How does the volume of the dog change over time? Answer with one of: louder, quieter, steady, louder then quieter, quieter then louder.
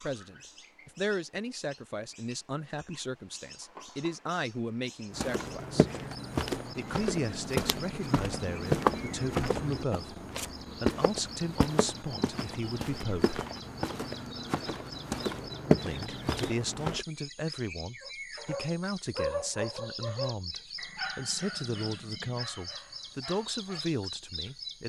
quieter.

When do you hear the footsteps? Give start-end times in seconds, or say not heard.
5.1-17.1.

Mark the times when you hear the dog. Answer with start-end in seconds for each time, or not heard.
18.0-23.9.